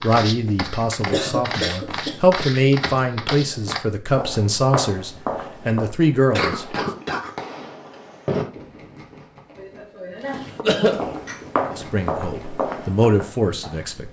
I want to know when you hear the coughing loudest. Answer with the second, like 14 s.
11 s.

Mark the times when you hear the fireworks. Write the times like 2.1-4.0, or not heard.
6.0-12.7.